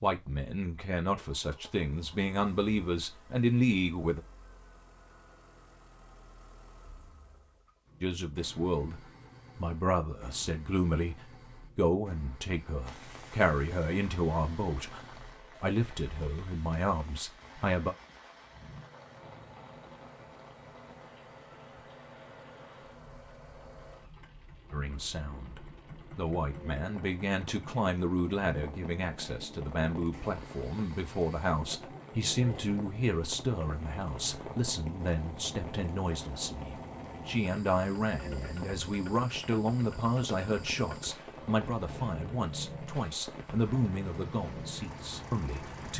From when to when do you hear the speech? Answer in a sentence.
The speech can be heard from 0.0 to 4.2 s, from 8.0 to 17.9 s and from 24.7 to 45.9 s.